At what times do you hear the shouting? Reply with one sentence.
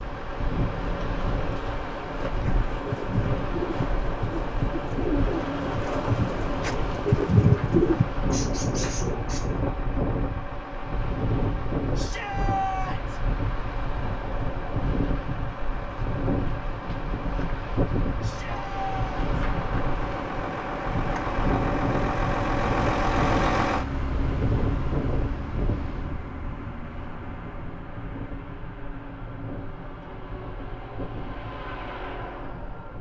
The shouting can be heard from 11.9 to 13.2 s and from 18.2 to 19.4 s.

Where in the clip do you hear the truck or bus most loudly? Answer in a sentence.
The volume of the truck or bus peaks at 23 seconds.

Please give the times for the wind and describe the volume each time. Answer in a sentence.
You can hear the wind from 0.0 to 32.9 s, getting quieter.